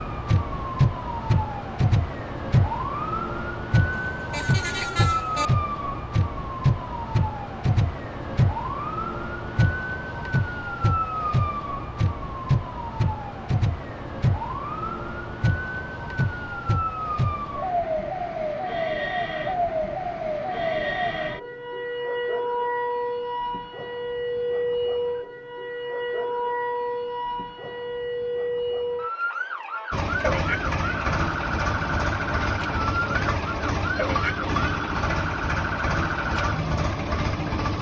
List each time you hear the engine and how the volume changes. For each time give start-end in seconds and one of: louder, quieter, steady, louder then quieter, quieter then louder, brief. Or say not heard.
29.9-37.7 steady.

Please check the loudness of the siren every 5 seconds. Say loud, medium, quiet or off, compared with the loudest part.
loud, loud, loud, loud, loud, loud, loud, medium.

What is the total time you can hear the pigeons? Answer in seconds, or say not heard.
not heard.